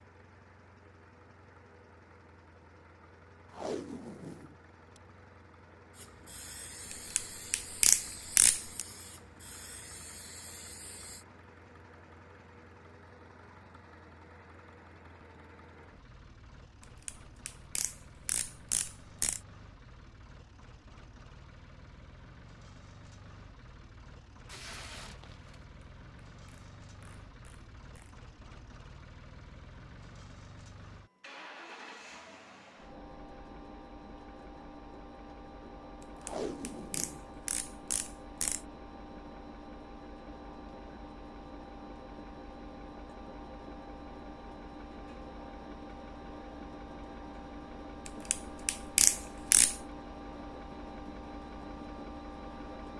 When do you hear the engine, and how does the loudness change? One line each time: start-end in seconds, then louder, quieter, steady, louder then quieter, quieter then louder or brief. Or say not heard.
0.0-52.9 louder.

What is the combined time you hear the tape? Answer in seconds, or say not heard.
4 s.